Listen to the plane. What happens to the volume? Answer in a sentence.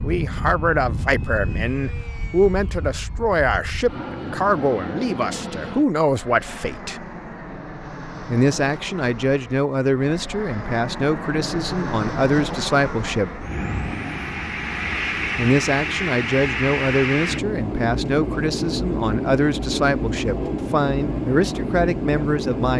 The loudness of the plane goes up.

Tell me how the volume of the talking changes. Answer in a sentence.
The loudness of the talking stays about the same.